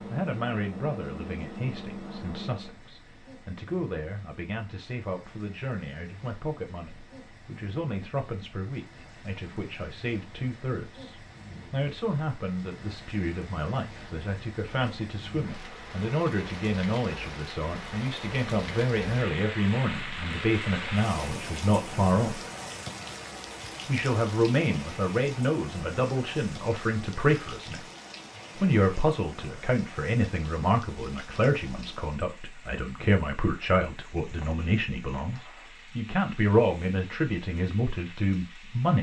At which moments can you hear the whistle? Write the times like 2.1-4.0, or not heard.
not heard.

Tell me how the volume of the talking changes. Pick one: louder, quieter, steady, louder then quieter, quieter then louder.
louder.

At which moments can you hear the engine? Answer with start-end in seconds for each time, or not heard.
0.0-2.8.